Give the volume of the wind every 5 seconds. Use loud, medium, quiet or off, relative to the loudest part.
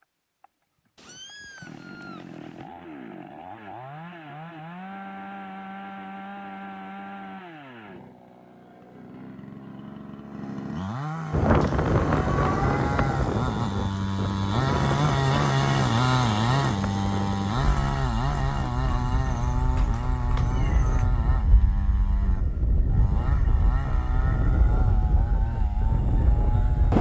off, off, loud, medium, medium, loud.